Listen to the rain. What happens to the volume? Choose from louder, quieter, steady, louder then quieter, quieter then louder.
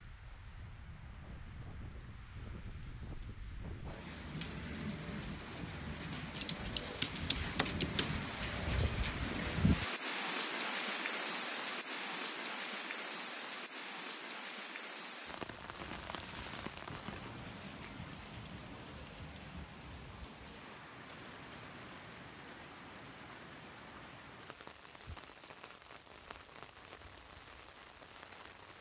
louder then quieter.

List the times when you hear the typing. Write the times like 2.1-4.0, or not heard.
6.4-8.2.